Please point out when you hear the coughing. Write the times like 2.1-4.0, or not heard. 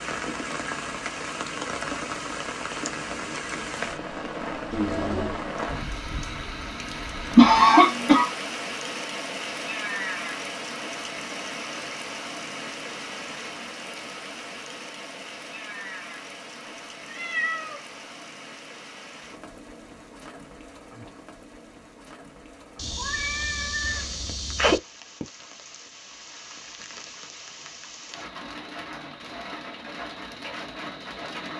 7.3-8.3.